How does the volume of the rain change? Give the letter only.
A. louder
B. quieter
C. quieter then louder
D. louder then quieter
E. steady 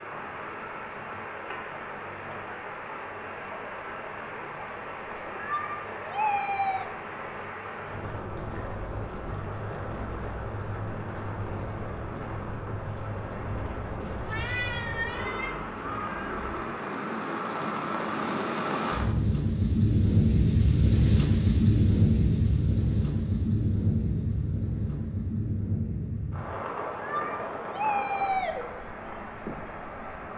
D.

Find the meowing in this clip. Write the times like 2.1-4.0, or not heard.
5.3-6.9, 14.0-16.5, 27.0-28.6.